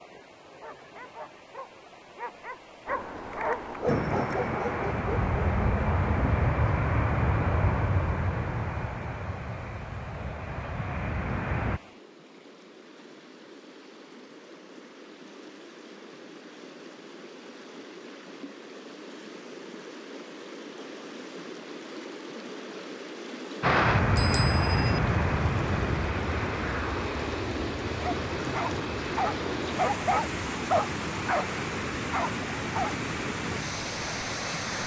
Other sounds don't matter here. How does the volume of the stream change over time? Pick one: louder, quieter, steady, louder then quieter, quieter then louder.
louder.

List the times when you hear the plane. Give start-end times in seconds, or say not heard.
3.9-11.8, 23.6-34.8.